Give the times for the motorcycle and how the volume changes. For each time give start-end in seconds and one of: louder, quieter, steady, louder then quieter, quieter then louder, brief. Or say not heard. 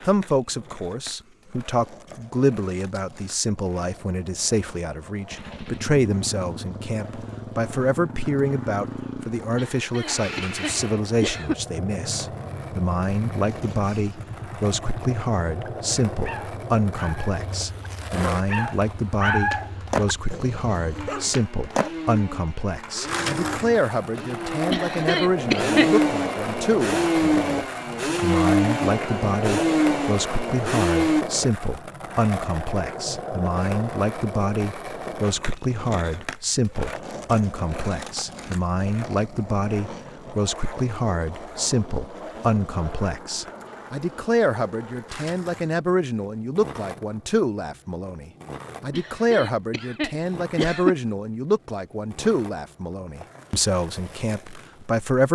5.3-31.2 quieter then louder.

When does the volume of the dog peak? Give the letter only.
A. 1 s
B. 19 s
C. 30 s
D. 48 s
B.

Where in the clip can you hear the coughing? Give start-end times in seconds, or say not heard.
9.6-11.6, 24.7-26.0, 48.9-51.0.